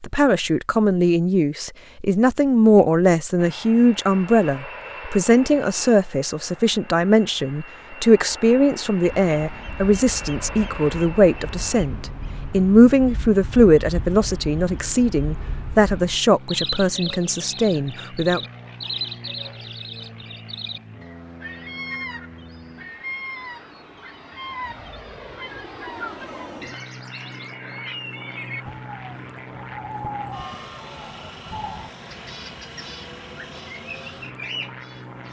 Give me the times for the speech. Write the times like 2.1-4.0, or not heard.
0.0-18.4.